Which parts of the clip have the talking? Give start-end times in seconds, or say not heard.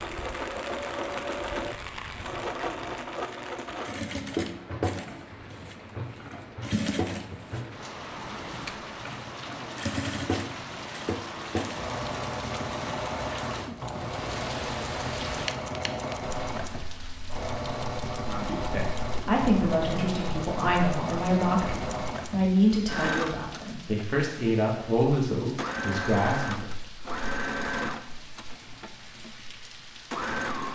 18.2-26.7.